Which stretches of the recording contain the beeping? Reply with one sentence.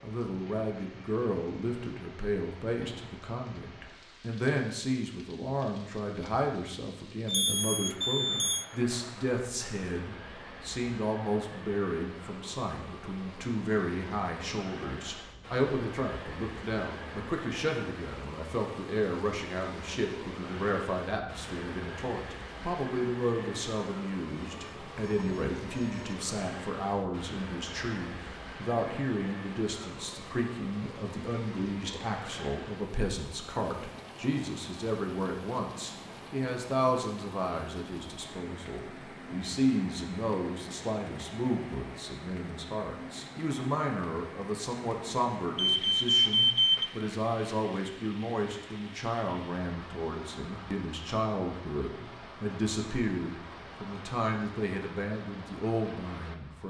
The beeping can be heard from 7.2 to 8.7 s, from 24.6 to 26.3 s and from 45.5 to 46.9 s.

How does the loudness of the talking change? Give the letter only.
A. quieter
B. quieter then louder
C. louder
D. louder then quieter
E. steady
E.